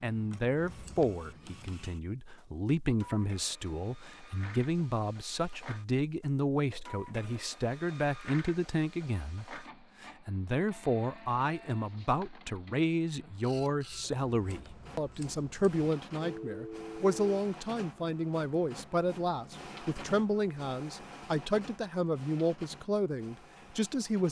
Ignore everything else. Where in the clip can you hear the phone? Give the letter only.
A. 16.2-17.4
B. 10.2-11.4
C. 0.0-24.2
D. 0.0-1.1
A.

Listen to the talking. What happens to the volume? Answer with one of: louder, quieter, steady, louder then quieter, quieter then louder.
steady.